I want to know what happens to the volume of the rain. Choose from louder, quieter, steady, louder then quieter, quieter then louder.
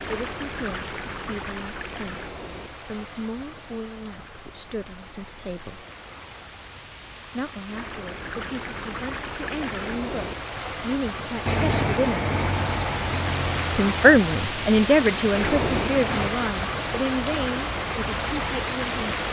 quieter then louder.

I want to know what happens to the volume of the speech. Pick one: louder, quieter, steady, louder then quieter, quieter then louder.
louder then quieter.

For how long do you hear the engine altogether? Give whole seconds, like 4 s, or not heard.
5 s.